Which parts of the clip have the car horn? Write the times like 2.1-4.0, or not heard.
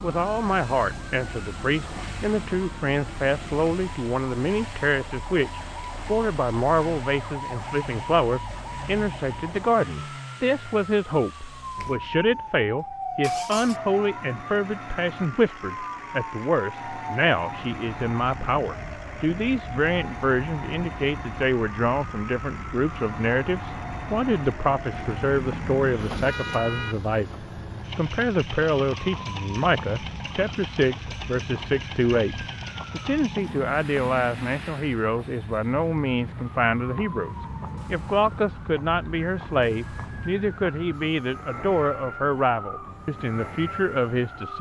24.9-26.9.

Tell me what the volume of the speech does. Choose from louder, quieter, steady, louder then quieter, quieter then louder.
steady.